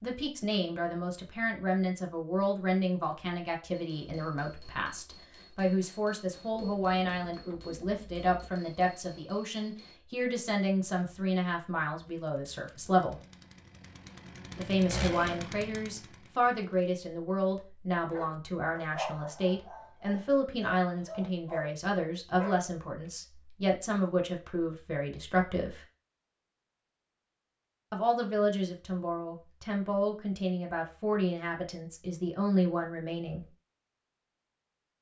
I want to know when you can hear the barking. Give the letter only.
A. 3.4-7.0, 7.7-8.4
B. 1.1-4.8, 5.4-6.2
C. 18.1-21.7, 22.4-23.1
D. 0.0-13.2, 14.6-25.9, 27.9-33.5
C.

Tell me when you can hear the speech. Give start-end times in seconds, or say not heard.
0.0-13.2, 14.6-25.9, 27.9-33.5.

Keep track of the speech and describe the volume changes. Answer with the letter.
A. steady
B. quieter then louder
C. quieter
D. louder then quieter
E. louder
A.